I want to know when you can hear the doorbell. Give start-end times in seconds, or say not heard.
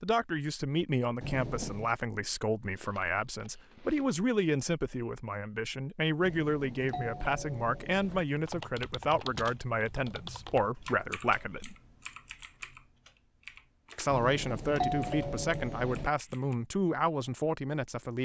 1.2-1.9, 6.2-8.2, 14.1-16.1.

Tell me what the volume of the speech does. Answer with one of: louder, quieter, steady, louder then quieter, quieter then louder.
steady.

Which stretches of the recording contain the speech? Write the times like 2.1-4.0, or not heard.
0.0-11.8, 13.9-18.2.